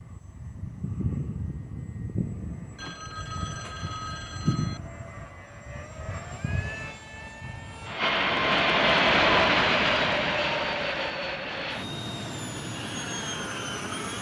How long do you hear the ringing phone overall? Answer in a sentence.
You can hear the ringing phone for 2 seconds altogether.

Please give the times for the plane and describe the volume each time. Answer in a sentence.
The plane can be heard from 0.0 to 14.1 s, getting louder then quieter.